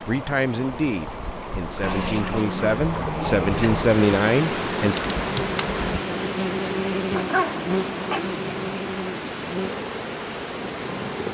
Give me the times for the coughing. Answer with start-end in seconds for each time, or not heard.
not heard.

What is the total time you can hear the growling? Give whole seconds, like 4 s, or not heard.
4 s.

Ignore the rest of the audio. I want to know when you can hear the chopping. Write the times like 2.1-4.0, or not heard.
not heard.